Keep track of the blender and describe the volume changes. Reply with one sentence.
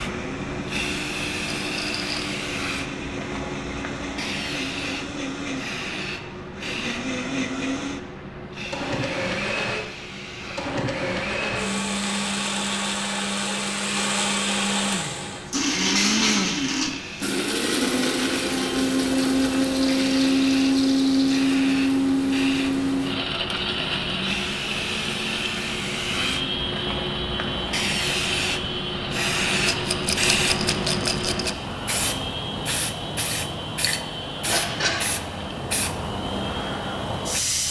The loudness of the blender goes up, then down.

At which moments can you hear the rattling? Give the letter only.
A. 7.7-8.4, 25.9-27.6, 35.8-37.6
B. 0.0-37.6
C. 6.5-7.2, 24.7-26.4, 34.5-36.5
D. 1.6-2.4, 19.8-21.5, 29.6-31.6
D.